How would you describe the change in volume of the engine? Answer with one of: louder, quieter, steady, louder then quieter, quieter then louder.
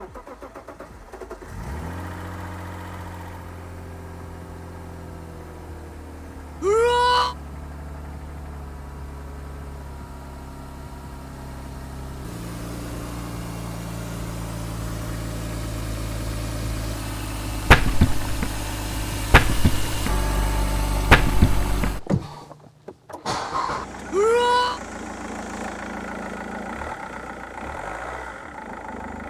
louder.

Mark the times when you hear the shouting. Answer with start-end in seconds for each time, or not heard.
6.6-7.3, 24.1-24.8.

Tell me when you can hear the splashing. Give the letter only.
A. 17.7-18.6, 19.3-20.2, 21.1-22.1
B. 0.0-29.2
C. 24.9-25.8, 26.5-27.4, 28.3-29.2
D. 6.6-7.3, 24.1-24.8
A.